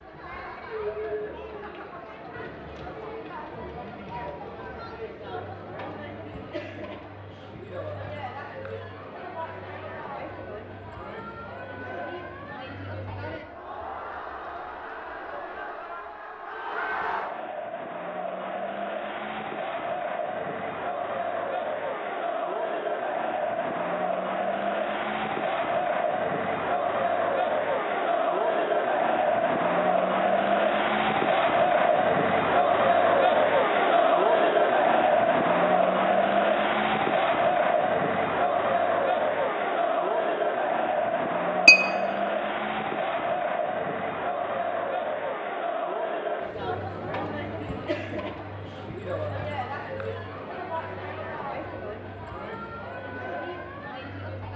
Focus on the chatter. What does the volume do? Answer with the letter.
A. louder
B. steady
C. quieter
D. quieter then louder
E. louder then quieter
E.